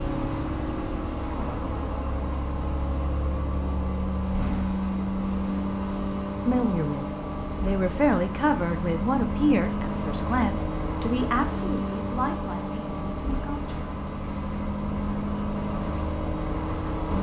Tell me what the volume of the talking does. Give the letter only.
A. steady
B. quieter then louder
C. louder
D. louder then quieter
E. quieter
E.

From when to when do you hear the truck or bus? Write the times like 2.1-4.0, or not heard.
0.0-17.1.